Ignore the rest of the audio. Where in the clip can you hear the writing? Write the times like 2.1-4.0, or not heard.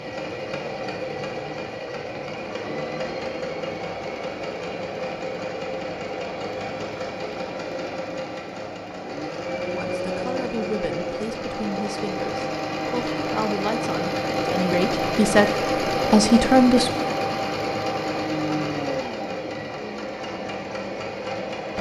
not heard.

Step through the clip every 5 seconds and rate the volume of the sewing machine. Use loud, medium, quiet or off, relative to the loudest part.
medium, medium, loud, loud, medium.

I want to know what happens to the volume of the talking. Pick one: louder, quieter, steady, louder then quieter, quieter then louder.
louder.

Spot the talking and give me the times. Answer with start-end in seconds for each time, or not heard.
9.7-16.9.